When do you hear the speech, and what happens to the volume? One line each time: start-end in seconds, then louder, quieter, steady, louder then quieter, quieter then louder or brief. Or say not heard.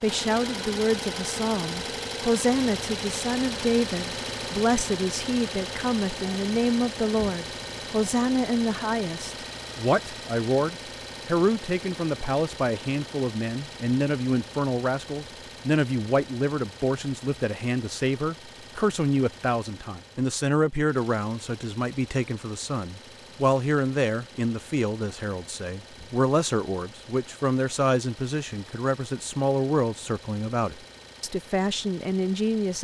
0.0-32.8 steady.